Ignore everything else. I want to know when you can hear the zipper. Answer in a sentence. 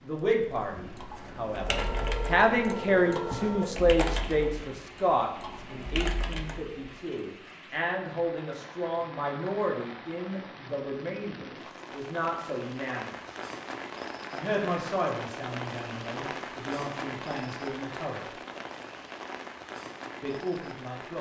You can't hear the zipper here.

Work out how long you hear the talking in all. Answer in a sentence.
You can hear the talking for 18 seconds altogether.